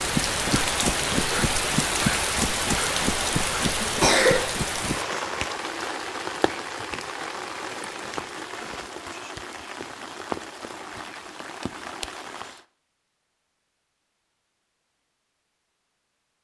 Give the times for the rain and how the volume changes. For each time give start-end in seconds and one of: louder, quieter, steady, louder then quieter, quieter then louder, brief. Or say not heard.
0.0-12.7 quieter.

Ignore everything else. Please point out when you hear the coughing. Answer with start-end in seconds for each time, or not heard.
3.8-4.5.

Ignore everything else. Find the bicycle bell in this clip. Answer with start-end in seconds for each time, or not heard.
not heard.